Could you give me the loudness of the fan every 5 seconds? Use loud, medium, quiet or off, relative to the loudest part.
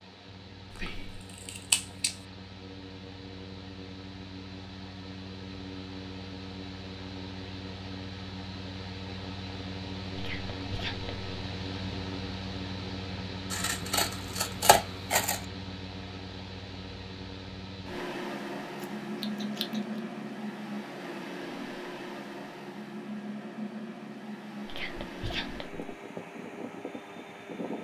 medium, loud, loud, loud, loud, loud.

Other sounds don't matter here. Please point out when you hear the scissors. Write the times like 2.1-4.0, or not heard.
0.8-2.1, 13.5-15.4, 18.8-20.0.